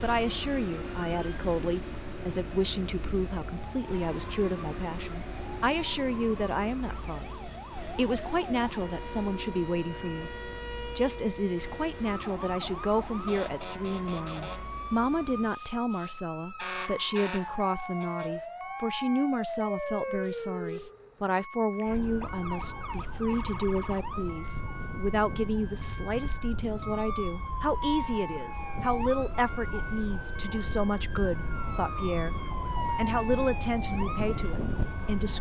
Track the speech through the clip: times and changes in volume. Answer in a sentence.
The speech can be heard from 0.0 to 35.3 s, at a steady volume.